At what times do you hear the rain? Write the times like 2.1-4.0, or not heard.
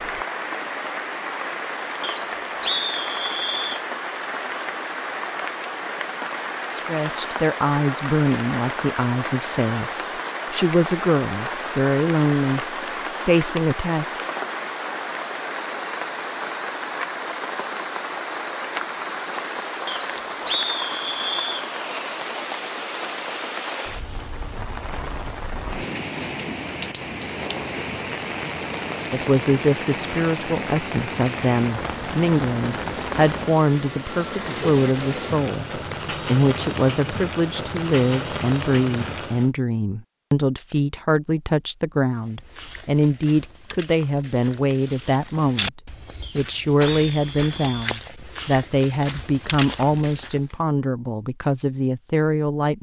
0.0-39.5.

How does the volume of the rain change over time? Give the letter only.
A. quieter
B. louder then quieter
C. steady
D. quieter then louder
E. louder
C.